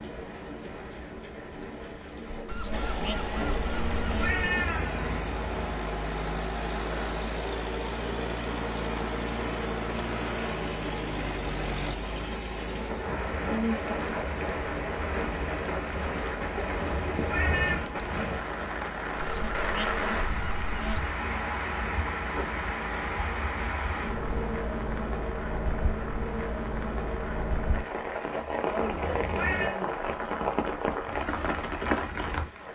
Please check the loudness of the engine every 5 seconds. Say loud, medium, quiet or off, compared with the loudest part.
loud, loud, loud, medium, medium, off, off.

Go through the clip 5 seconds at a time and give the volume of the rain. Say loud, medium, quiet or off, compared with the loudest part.
medium, medium, loud, loud, loud, loud, loud.